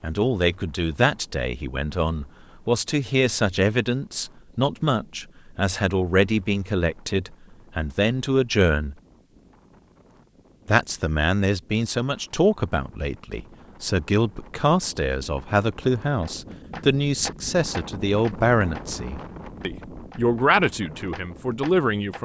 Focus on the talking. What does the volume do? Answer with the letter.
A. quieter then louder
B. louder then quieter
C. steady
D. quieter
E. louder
C.